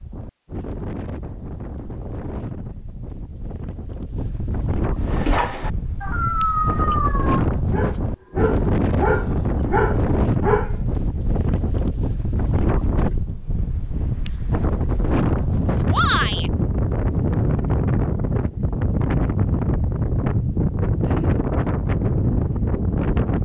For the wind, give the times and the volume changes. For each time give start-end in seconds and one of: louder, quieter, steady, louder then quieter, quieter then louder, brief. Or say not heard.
0.0-23.4 louder.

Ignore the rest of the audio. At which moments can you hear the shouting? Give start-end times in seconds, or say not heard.
15.9-16.5.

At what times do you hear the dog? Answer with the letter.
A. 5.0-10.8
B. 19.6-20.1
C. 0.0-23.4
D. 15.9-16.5
A.